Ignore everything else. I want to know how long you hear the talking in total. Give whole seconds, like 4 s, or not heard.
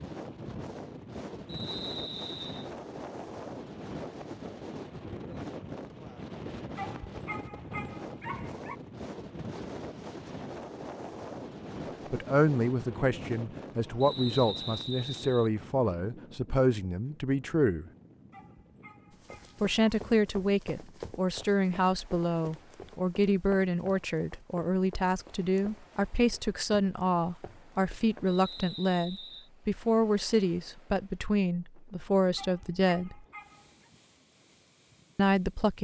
20 s.